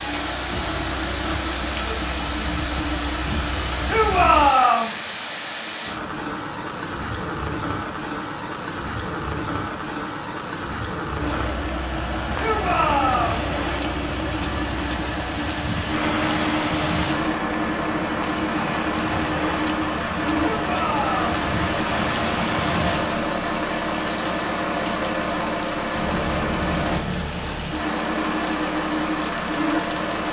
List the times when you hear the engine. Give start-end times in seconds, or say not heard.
0.0-4.5, 11.2-30.2.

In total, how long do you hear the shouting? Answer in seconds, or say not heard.
3 s.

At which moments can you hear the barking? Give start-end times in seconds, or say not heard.
not heard.